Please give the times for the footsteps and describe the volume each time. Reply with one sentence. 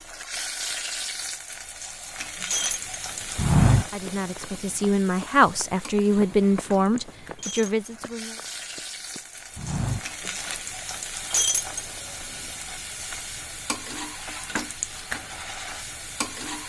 The footsteps can be heard from 3.4 to 10.6 s, getting quieter then louder.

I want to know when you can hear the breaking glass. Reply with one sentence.
The breaking glass can be heard from 2.5 to 3.0 s, from 7.3 to 7.9 s and from 11.3 to 11.8 s.